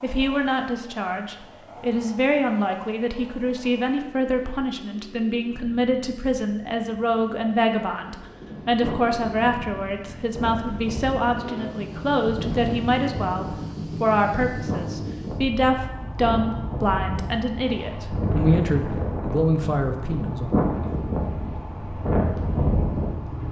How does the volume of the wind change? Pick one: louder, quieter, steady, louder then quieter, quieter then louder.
louder.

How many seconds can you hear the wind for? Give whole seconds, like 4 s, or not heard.
15 s.